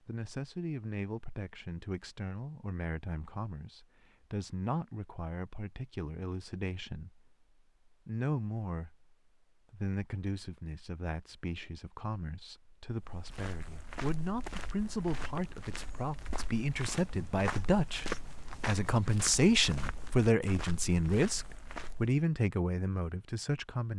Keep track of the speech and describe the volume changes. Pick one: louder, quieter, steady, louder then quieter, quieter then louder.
louder.